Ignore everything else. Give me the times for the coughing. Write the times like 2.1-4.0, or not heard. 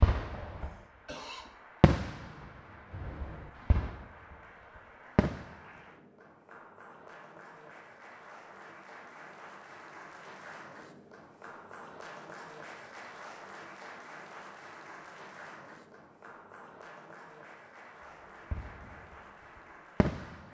0.6-1.5.